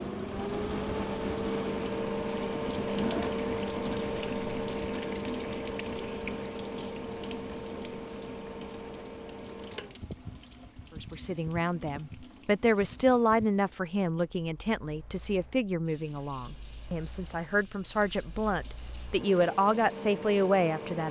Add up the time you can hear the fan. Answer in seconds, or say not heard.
21 s.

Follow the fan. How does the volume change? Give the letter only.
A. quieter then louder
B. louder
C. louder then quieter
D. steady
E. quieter
A.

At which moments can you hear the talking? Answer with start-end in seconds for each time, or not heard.
10.9-21.0.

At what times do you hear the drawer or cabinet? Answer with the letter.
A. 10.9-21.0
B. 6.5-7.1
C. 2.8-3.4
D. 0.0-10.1
C.